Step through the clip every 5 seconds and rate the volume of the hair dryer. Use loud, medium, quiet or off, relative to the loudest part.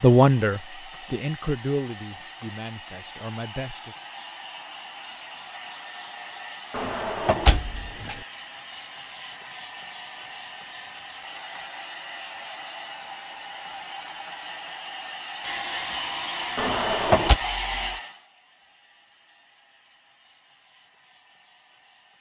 medium, medium, medium, loud, quiet.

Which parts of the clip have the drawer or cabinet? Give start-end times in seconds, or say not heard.
6.7-8.2, 16.6-17.4.